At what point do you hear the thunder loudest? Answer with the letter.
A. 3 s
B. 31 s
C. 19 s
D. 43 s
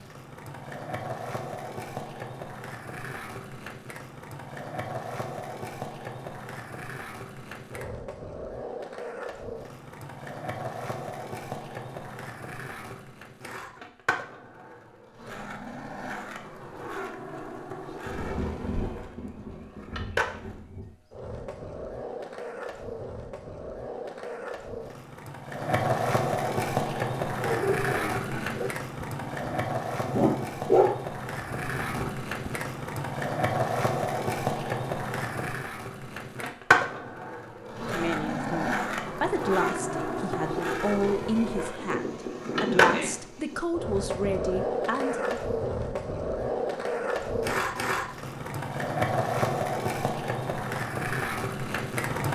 D.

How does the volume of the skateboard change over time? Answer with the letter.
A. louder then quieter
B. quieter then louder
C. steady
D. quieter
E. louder
E.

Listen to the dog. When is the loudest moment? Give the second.
31 s.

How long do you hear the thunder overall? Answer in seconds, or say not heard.
5 s.